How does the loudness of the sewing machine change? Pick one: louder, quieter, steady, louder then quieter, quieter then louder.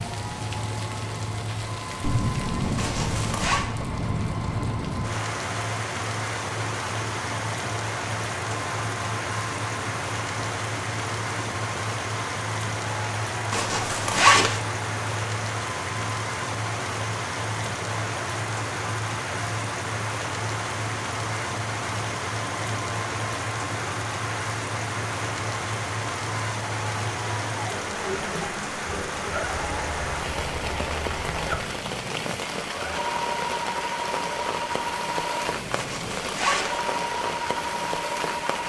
steady.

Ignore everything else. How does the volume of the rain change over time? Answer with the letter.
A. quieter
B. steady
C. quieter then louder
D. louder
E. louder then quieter
B.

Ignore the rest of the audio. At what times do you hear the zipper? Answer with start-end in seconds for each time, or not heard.
2.8-3.6, 13.5-14.6, 35.7-36.8.